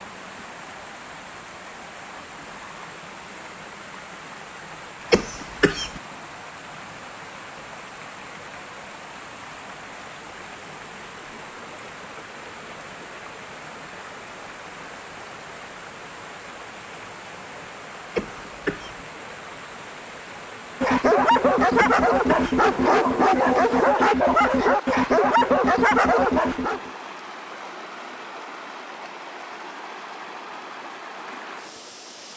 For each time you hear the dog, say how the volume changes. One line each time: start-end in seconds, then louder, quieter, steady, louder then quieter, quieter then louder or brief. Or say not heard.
20.8-26.9 steady.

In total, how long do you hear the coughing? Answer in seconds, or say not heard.
3 s.